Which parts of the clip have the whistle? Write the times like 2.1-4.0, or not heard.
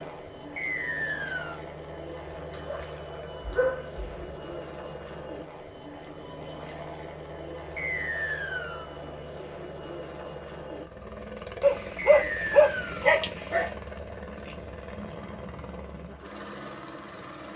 0.6-1.6, 7.8-8.9, 11.9-13.1.